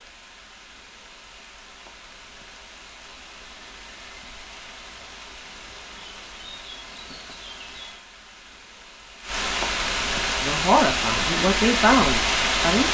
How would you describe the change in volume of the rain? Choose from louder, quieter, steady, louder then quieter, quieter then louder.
louder.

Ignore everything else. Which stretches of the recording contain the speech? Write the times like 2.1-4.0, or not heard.
10.4-12.8.